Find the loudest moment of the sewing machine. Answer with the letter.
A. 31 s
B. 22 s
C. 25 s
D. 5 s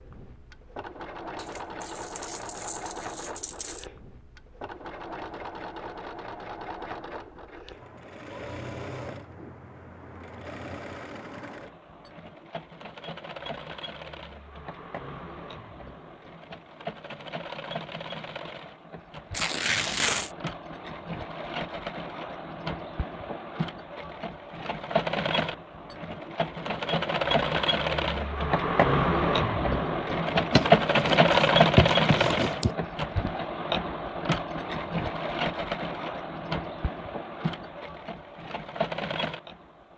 A.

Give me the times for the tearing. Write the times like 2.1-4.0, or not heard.
1.4-3.9, 19.3-20.4, 30.5-32.8.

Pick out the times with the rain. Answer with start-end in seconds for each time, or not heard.
not heard.